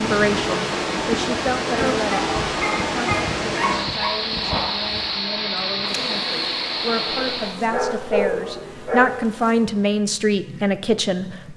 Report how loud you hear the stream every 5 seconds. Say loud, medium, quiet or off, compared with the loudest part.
loud, loud, off.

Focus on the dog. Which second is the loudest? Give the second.
8 s.